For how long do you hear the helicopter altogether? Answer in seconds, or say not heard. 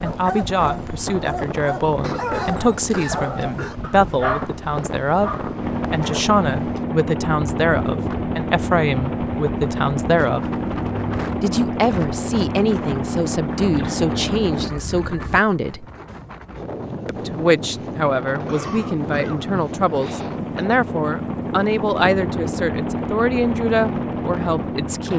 22 s.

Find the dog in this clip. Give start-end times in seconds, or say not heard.
0.0-6.2.